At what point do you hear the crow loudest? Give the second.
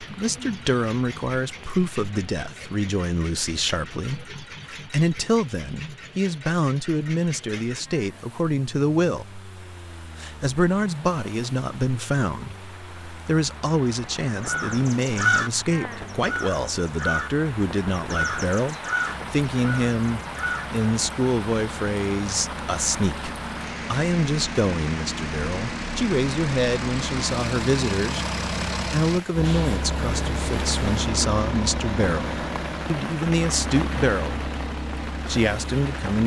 15 s.